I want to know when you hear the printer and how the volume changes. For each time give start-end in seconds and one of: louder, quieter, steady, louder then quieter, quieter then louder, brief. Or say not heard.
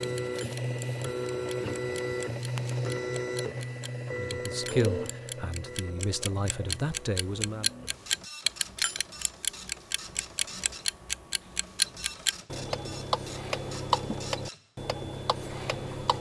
0.0-16.1 quieter.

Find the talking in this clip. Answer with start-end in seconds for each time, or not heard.
4.1-7.7.